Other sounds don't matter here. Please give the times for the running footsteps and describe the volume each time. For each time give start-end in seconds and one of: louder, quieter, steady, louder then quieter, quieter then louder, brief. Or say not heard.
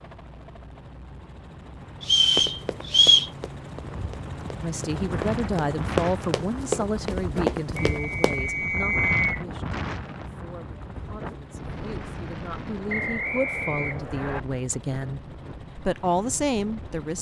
2.4-8.4 quieter then louder.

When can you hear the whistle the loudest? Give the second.
3 s.